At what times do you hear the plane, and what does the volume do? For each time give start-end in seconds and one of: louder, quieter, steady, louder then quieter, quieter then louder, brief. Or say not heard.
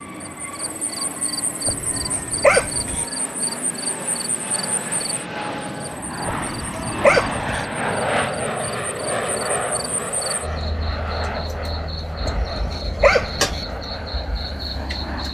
0.0-15.2 louder then quieter.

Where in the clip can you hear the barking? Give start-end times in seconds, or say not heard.
1.6-3.0, 6.2-7.7, 12.2-13.7.